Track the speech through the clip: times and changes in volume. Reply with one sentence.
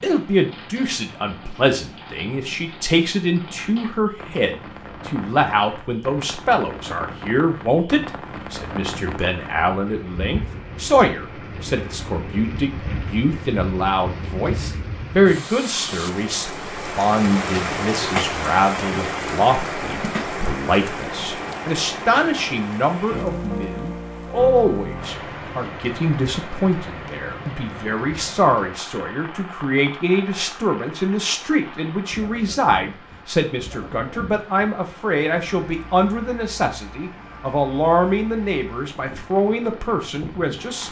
The speech can be heard from 0.0 to 40.8 s, at a steady volume.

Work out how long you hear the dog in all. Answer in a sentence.
You can't hear the dog here.